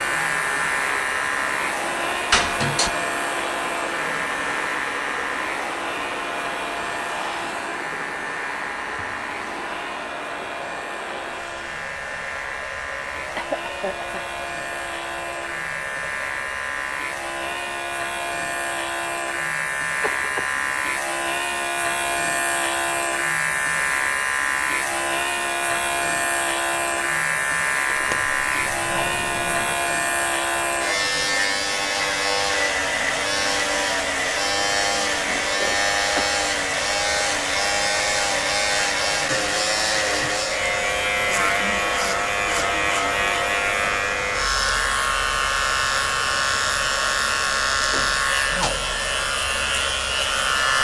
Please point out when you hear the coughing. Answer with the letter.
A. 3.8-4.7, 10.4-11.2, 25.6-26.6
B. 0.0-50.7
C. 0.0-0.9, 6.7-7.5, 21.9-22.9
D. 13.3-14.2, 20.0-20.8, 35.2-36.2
D.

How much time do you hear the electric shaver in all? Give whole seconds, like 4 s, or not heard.
51 s.